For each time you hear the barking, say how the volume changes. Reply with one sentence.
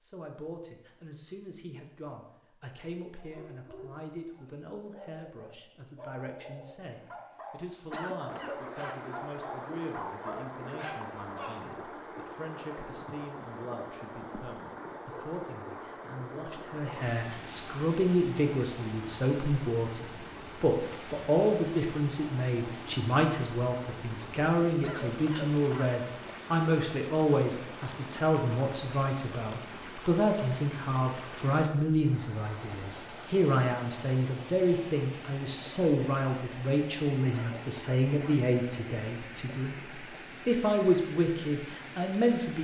The barking can be heard from 3.1 to 11.6 s, getting louder.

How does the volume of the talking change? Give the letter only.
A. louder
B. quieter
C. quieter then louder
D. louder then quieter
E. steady
A.